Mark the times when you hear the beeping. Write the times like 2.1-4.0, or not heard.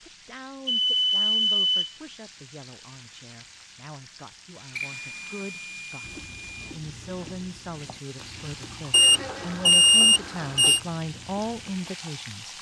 0.7-1.9, 4.8-6.5, 8.9-10.8.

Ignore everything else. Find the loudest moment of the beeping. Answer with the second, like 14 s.
10 s.